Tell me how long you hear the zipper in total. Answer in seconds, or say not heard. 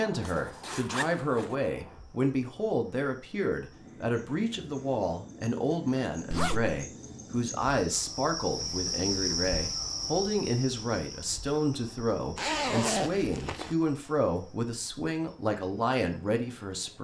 3 s.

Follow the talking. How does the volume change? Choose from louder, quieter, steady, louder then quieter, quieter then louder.
steady.